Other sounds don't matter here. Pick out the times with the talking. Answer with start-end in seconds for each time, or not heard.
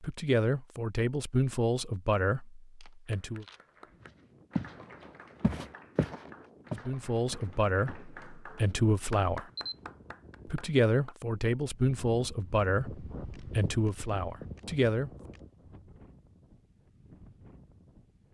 0.0-3.5, 6.8-9.4, 10.4-15.1.